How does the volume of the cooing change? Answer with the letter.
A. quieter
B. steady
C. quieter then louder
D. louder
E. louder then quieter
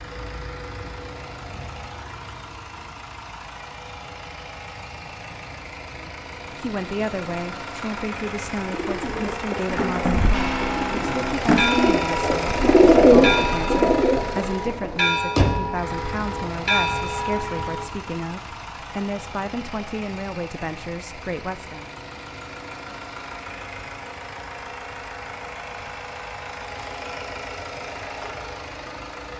E.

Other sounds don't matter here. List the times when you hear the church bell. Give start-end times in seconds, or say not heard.
10.3-17.9.